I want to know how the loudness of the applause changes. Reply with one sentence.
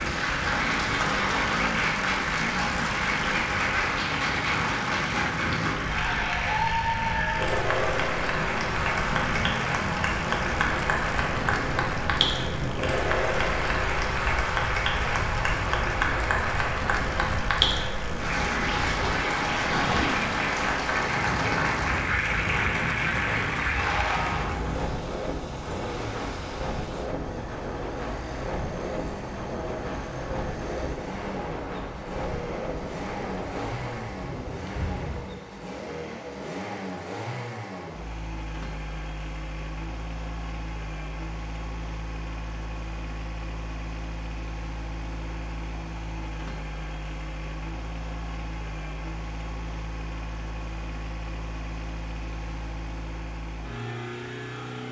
The loudness of the applause stays about the same.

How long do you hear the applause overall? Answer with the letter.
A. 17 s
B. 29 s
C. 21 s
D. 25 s
D.